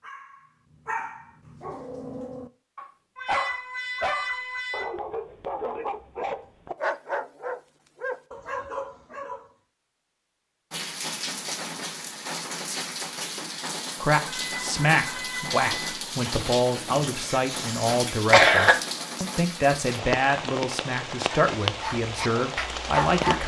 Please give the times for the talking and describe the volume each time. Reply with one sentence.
The talking can be heard from 14.0 to 23.4 s, at a steady volume.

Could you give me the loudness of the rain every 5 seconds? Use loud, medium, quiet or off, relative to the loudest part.
off, off, loud, loud, loud.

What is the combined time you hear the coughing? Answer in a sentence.
You can hear the coughing for 2 seconds altogether.